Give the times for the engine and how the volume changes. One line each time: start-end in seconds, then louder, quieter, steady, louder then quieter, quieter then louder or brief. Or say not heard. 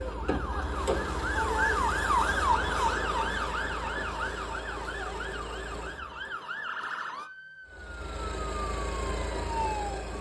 0.0-6.3 quieter
7.7-10.1 brief.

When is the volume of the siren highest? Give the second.
2 s.